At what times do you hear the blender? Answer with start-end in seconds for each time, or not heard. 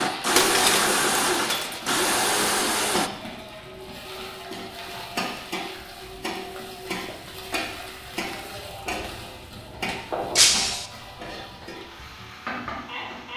0.0-3.1.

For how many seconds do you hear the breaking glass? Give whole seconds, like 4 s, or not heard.
2 s.